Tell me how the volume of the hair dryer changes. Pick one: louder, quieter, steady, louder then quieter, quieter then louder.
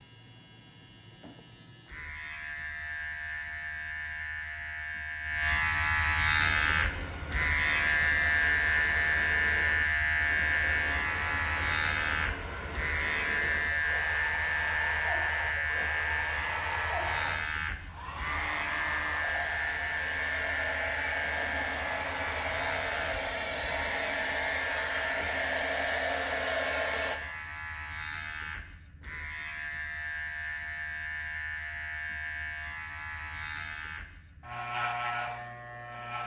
louder.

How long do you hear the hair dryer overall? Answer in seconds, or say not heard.
21 s.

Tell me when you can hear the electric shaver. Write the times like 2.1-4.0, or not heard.
0.0-36.2.